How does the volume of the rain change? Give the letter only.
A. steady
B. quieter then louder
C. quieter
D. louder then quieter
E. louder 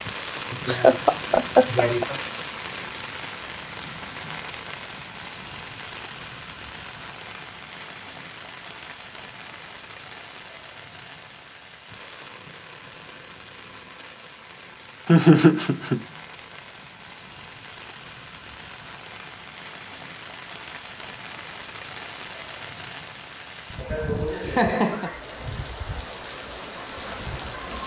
B.